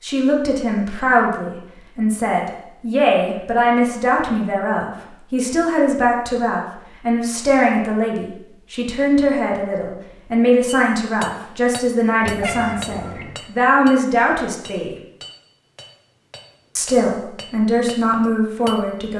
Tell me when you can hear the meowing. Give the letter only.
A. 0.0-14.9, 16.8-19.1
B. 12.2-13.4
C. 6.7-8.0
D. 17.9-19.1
B.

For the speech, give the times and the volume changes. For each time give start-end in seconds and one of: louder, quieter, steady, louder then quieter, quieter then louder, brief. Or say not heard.
0.0-14.9 steady
16.8-19.1 brief.